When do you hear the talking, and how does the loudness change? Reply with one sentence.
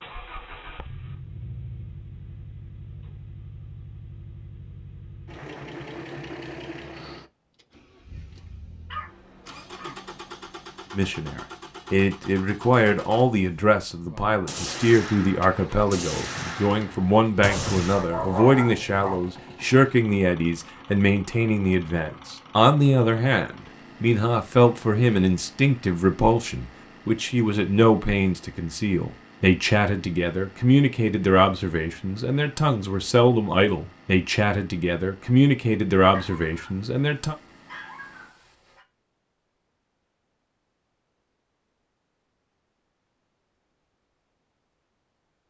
You can hear the talking from 10.9 to 37.4 s, at a steady volume.